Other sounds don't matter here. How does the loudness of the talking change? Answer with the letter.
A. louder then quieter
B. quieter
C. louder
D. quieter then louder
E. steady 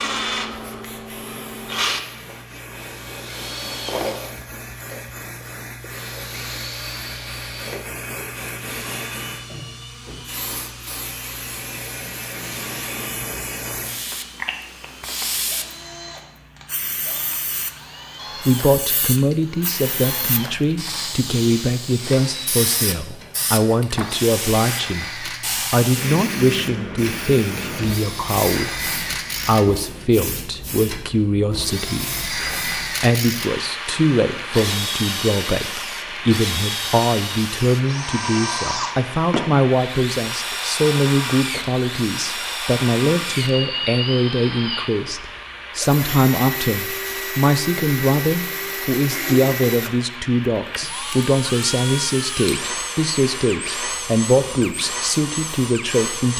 E.